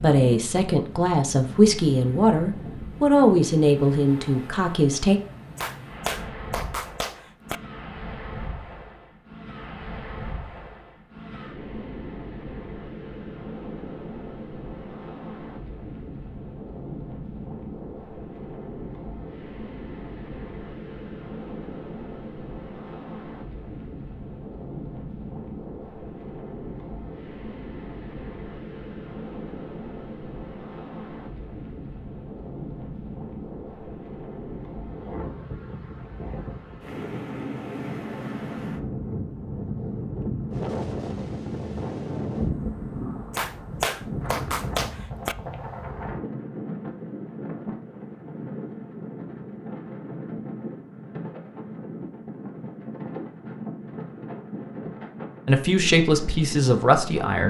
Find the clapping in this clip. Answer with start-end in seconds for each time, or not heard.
5.5-7.6, 43.3-45.4.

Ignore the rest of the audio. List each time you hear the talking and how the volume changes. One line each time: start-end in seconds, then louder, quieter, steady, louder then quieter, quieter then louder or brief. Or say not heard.
0.0-5.2 louder then quieter
55.5-57.4 brief.